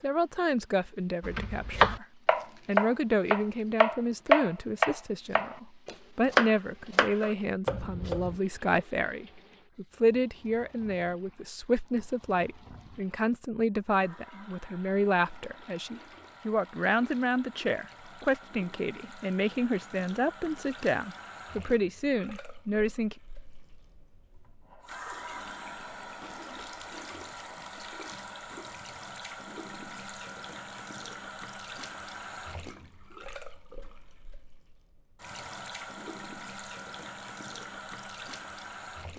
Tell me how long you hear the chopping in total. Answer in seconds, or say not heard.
7 s.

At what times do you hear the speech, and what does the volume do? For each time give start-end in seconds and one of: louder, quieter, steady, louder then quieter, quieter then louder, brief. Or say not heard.
0.0-2.0 brief
2.6-23.1 steady.